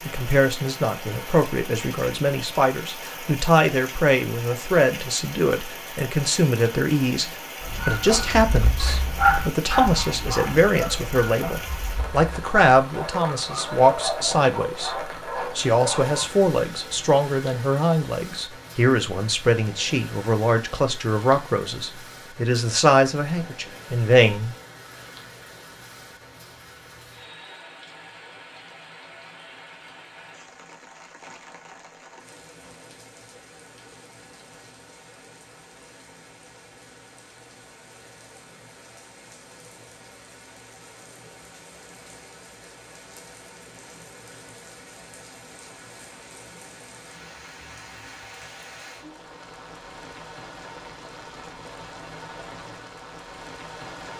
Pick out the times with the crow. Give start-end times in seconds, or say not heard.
not heard.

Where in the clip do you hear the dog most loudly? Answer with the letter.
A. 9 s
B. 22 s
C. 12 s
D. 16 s
A.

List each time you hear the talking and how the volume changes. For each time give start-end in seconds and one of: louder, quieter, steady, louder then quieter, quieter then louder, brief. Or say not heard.
0.0-24.6 steady.